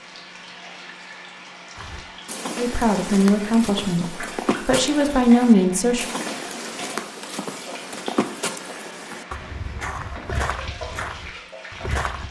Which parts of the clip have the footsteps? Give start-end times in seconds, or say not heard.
1.8-12.2.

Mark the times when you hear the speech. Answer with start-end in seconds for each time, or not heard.
2.5-6.0.